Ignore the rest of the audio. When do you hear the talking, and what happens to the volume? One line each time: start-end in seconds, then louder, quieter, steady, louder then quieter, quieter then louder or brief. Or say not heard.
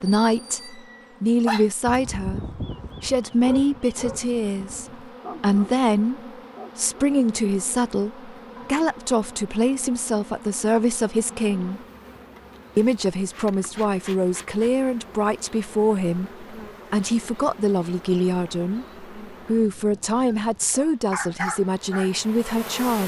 0.0-11.8 steady
12.8-23.0 steady.